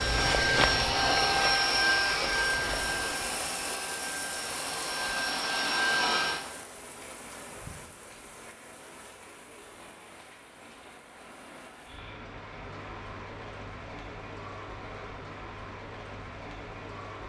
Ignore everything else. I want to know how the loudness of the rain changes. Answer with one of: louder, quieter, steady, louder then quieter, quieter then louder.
quieter then louder.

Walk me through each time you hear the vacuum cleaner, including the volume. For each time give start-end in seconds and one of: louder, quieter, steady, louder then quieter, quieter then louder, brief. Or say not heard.
0.0-6.5 quieter then louder.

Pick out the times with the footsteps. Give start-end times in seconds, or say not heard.
0.0-3.2.